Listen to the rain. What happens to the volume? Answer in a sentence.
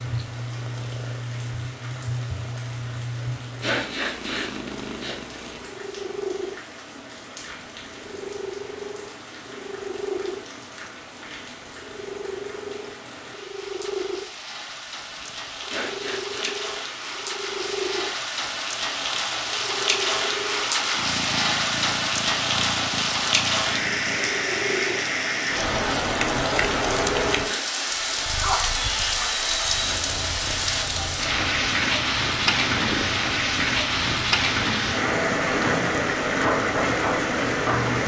The volume of the rain goes up.